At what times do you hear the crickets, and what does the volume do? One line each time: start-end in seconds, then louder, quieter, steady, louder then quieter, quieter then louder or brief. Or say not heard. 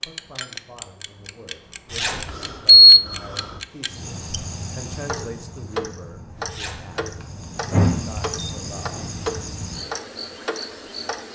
3.9-11.3 quieter then louder.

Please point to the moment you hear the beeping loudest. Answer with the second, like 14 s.
3 s.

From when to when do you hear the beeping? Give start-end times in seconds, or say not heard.
2.2-3.5, 7.7-9.1.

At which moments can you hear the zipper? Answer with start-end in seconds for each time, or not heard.
1.9-2.3, 6.5-6.9.